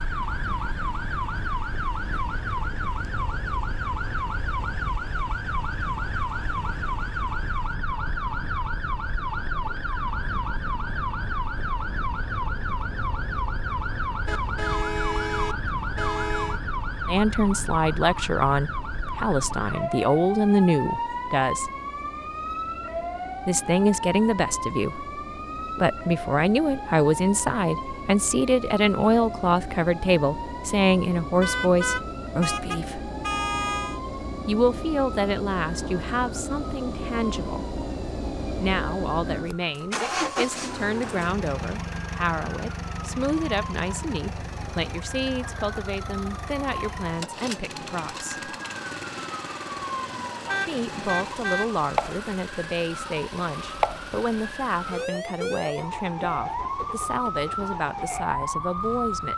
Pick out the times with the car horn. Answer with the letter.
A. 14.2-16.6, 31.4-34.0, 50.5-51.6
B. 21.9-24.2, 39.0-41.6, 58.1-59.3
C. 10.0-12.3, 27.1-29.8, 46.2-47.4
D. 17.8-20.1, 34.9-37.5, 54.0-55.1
A.